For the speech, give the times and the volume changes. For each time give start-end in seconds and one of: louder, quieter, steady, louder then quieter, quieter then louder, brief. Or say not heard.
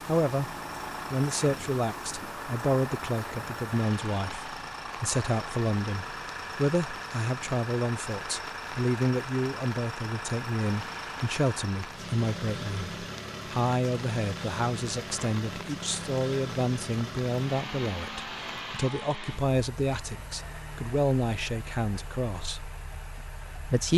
0.1-22.7 steady
23.4-23.9 brief.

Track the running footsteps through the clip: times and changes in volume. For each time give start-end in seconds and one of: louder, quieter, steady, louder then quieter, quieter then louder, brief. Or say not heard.
not heard.